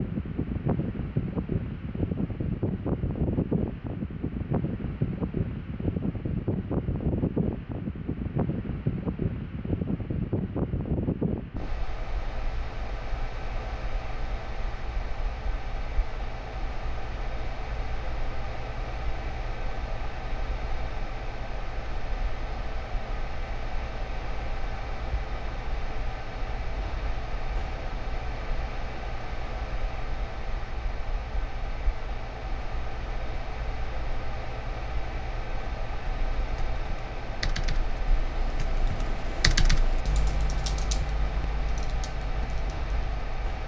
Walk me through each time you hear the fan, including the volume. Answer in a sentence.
The fan can be heard from 0.0 to 43.6 s, getting quieter.